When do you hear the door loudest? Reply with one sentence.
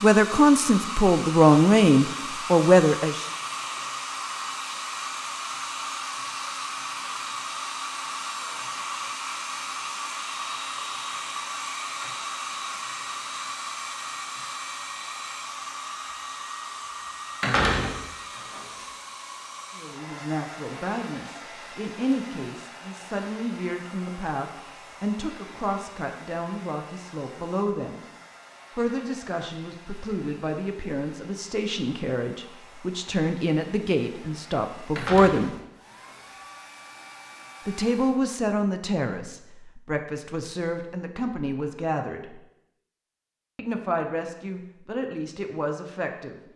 The loudest moment of the door is at 18 seconds.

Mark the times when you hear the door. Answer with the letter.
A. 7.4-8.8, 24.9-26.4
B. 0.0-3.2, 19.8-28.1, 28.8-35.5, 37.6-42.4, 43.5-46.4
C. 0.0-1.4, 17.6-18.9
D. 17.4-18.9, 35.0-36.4
D.